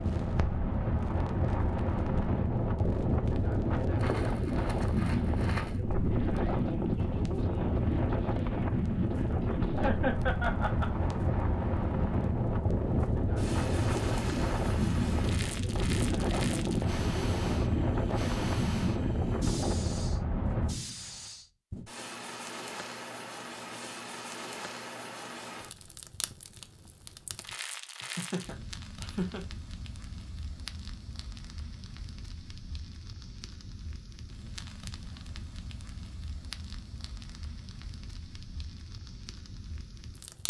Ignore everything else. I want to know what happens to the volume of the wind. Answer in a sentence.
The volume of the wind stays about the same.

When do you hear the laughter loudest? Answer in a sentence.
The volume of the laughter peaks at 10 seconds.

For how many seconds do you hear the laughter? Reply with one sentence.
You can hear the laughter for 3 seconds altogether.